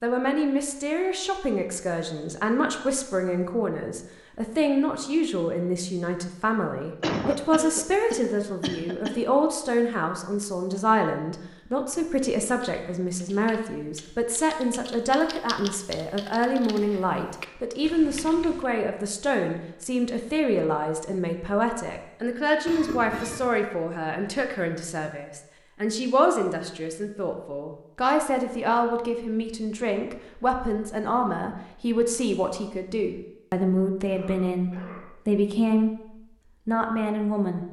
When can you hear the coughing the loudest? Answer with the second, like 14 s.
7 s.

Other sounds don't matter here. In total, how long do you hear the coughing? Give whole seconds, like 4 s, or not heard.
4 s.